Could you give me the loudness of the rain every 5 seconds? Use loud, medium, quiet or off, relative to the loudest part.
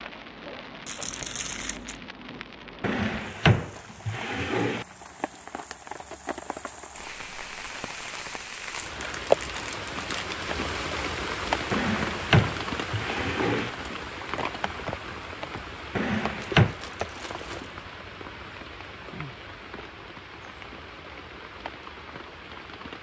medium, loud, loud, medium, medium.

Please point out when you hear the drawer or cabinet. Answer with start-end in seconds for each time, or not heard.
2.8-4.8, 11.7-13.7, 15.9-16.8.